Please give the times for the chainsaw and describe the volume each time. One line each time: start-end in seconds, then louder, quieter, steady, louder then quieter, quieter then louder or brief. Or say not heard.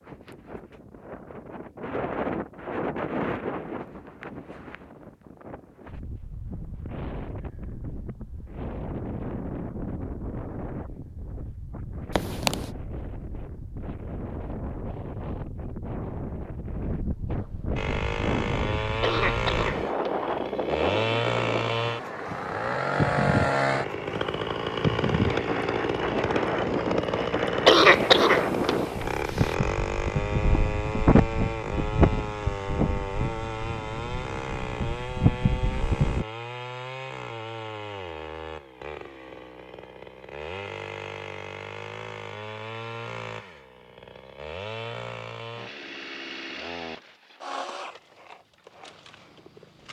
17.8-49.8 quieter.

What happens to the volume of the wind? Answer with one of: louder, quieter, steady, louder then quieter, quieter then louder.
louder.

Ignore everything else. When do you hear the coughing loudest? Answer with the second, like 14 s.
28 s.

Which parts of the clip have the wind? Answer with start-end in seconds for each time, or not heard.
0.0-36.2.